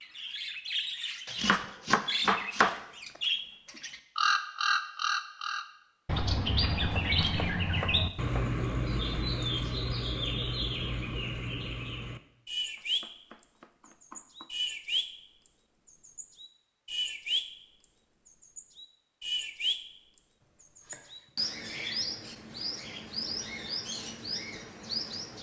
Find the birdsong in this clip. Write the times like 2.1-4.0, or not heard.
0.0-13.1, 13.8-15.1, 15.8-17.4, 18.2-19.8, 20.6-25.3.